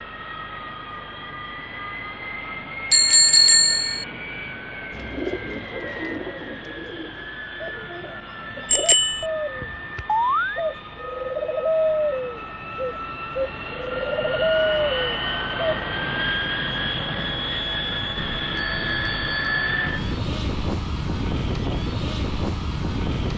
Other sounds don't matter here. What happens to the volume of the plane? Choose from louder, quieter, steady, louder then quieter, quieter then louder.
louder.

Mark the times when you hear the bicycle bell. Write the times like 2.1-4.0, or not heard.
2.9-4.0, 8.7-9.2, 18.1-20.1.